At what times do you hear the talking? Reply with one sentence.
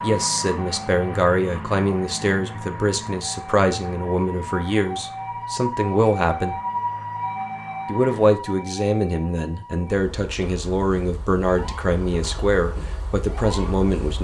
The talking can be heard from 0.0 to 6.6 s and from 7.8 to 14.1 s.